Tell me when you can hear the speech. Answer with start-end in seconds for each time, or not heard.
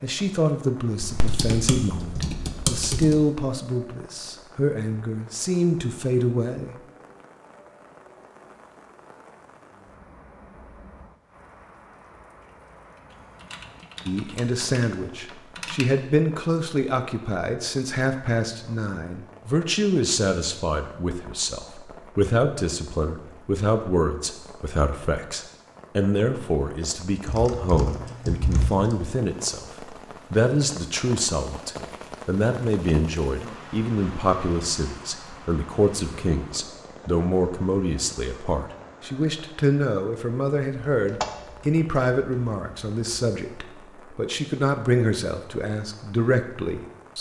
0.0-6.8, 14.1-47.1.